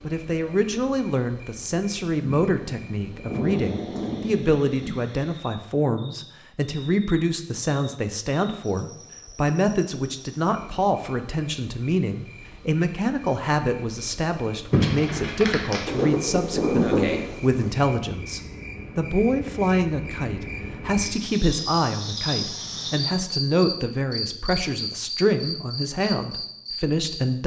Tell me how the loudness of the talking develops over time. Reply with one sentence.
The loudness of the talking stays about the same.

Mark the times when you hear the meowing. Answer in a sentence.
You can hear the meowing from 14.7 to 16.1 s.